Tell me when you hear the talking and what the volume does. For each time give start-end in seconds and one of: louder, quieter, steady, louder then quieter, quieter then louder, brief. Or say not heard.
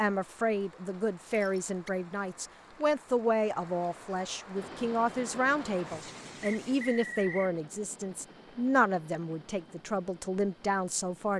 0.0-11.3 steady.